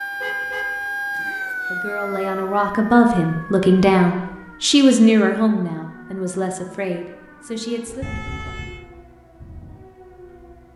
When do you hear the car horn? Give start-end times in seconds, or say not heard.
0.2-1.6, 8.0-8.8.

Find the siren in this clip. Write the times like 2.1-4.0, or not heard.
0.0-10.7.